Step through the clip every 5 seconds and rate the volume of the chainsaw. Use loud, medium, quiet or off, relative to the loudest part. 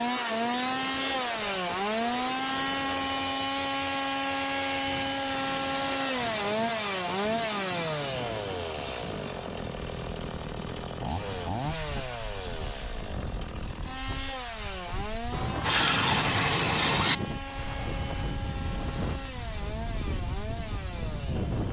loud, loud, medium, medium, quiet.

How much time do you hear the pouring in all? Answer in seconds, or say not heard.
2 s.